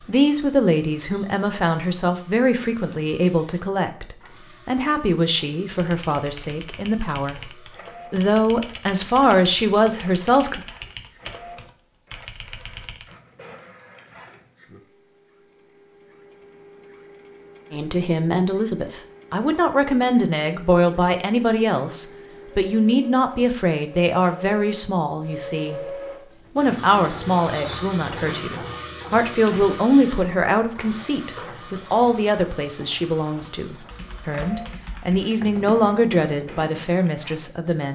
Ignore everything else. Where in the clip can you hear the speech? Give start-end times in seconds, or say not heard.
0.0-10.6, 17.7-37.9.